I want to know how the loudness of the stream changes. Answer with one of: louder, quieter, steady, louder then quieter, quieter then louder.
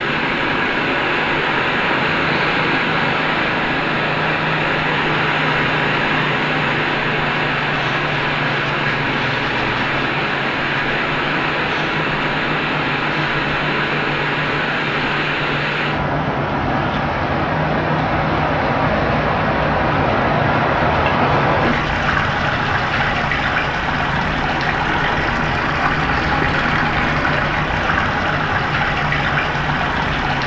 steady.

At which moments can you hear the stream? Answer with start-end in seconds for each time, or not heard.
0.0-30.4.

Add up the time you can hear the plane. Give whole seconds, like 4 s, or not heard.
30 s.